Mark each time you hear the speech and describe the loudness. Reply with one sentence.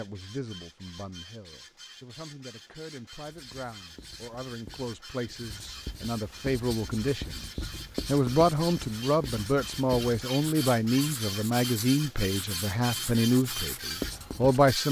The speech can be heard from 0.0 to 14.8 s, getting louder.